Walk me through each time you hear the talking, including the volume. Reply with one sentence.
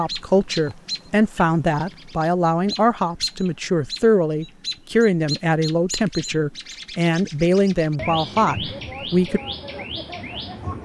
You can hear the talking from 0.0 to 9.4 s, at a steady volume.